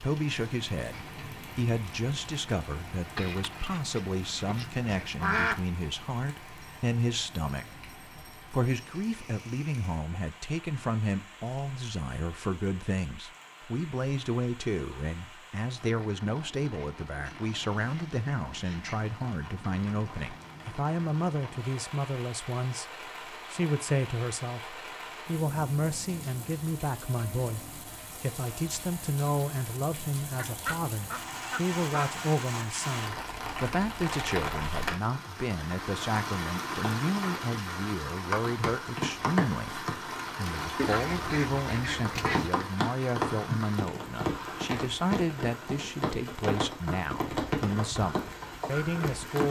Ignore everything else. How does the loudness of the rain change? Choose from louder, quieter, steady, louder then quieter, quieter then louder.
louder.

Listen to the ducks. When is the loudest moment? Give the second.
5 s.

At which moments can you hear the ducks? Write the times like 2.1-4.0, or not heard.
3.1-5.6, 16.8-19.1, 30.4-32.1, 40.8-42.5.